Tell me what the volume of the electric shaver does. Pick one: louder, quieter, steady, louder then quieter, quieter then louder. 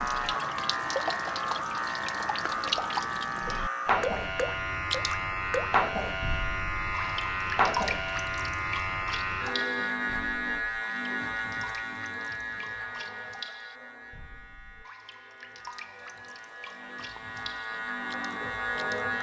quieter.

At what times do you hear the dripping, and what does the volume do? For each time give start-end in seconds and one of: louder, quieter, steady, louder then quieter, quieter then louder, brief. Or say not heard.
0.0-19.1 quieter.